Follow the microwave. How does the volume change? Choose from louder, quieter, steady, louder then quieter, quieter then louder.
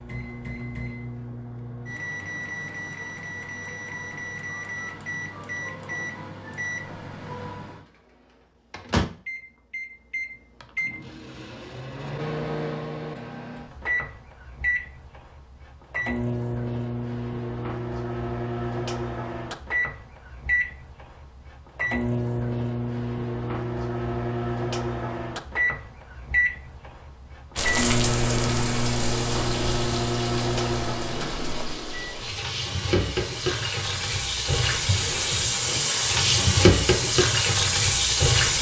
louder.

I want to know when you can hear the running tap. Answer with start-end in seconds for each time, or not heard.
27.6-38.5.